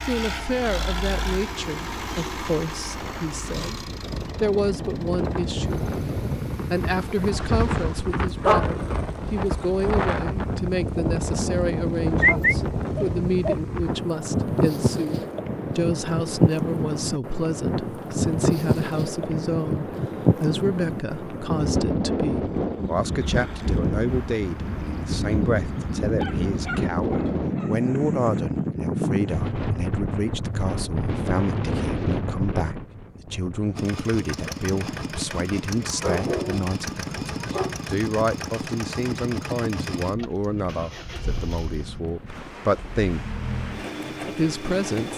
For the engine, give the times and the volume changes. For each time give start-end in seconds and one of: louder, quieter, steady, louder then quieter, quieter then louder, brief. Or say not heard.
0.0-7.3 quieter
33.8-45.1 quieter then louder.